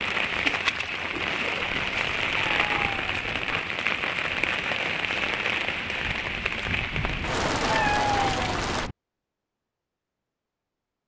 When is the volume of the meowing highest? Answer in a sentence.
The loudest moment of the meowing is at 8 seconds.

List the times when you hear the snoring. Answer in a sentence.
You can't hear the snoring here.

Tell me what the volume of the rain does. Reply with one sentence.
The volume of the rain stays about the same.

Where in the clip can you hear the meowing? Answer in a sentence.
You can hear the meowing from 1.6 to 3.5 s and from 6.9 to 8.9 s.